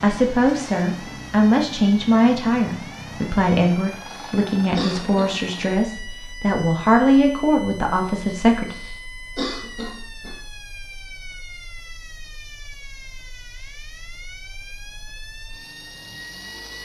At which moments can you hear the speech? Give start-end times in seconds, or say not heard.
0.0-8.8.